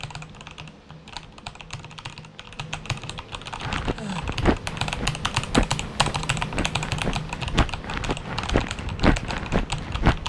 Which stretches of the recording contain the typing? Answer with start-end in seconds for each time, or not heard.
0.0-10.2.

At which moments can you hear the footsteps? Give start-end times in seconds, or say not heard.
3.5-10.2.